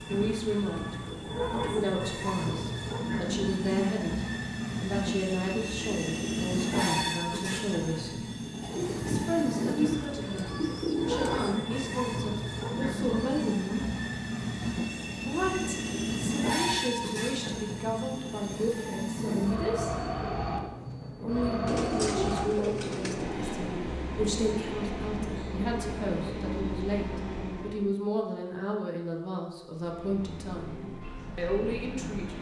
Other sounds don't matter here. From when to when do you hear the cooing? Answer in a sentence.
You can hear the cooing from 8.6 to 11.6 s and from 21.6 to 23.3 s.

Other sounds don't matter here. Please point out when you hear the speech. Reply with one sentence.
The speech can be heard from 0.1 to 8.2 s, from 9.1 to 13.8 s, from 15.2 to 19.9 s, from 21.2 to 30.8 s and from 31.4 to 32.3 s.